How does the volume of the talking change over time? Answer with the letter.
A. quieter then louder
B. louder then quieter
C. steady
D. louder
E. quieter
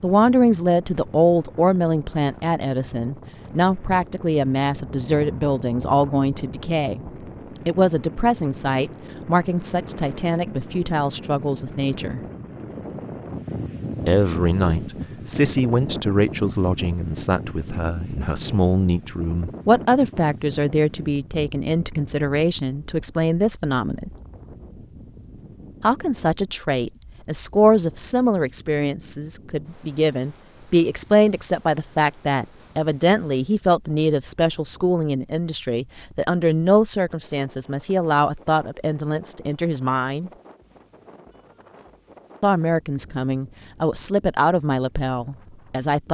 C.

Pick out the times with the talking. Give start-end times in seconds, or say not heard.
0.0-12.2, 14.1-24.1, 25.8-40.3, 42.4-46.1.